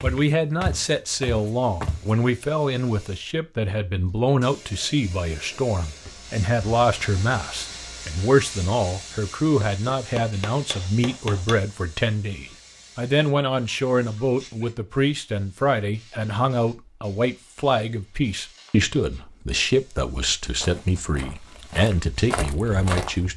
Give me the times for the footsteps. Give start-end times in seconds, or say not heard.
0.0-2.1, 20.6-23.3.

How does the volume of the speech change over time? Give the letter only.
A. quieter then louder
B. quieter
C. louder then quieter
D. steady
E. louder
D.